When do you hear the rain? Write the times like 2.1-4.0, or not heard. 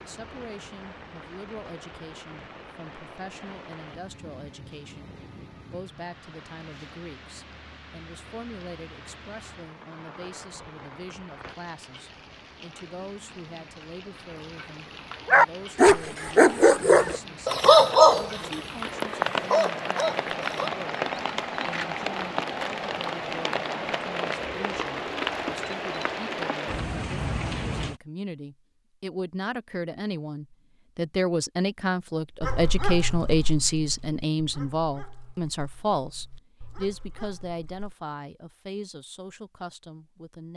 0.0-28.0.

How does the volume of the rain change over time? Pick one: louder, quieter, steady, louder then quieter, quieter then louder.
louder.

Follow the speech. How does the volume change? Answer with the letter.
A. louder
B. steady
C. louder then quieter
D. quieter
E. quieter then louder
A.